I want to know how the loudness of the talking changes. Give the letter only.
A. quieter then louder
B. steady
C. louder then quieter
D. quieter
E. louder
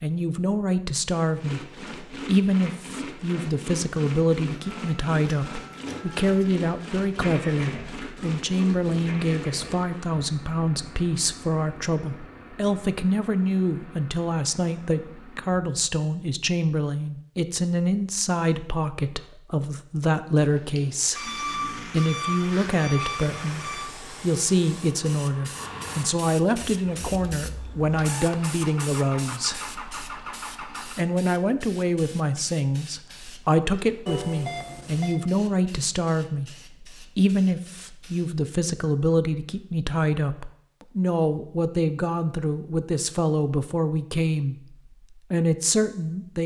B.